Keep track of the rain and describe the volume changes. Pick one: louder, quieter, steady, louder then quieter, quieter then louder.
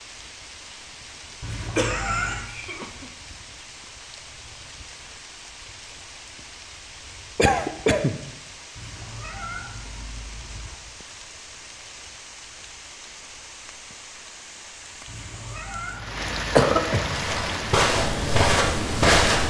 louder.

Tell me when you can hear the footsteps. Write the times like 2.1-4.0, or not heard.
17.1-19.4.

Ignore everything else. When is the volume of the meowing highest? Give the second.
2 s.